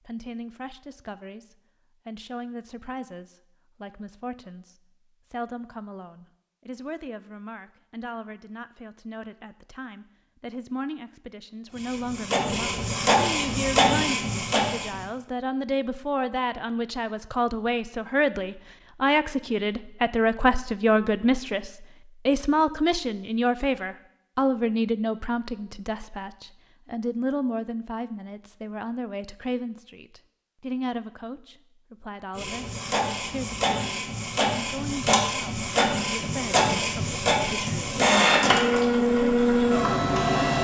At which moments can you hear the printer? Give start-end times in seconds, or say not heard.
11.7-15.1, 32.4-40.6.